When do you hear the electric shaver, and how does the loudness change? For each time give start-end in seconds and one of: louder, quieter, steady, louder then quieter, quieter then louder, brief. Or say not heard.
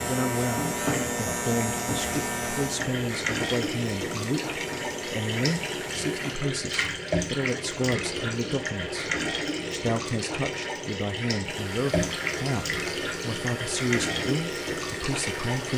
0.0-6.4 quieter
11.4-15.7 steady.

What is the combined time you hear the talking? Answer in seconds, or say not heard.
16 s.